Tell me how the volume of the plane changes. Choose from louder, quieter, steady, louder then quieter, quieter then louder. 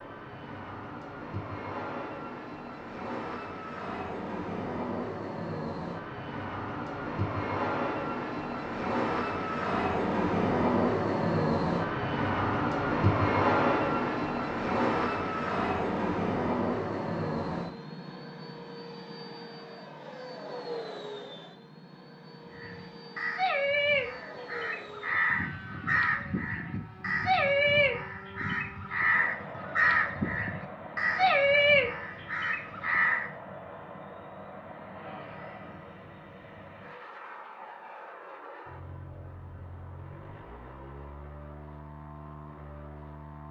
louder then quieter.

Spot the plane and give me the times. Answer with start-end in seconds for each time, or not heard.
0.0-43.4.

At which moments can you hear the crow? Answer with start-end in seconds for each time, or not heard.
22.6-33.3.